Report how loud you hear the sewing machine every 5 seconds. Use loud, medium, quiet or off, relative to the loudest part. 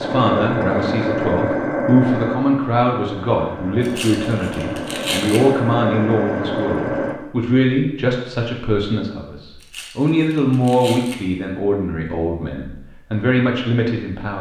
loud, loud, off.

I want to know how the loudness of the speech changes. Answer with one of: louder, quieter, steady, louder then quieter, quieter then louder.
steady.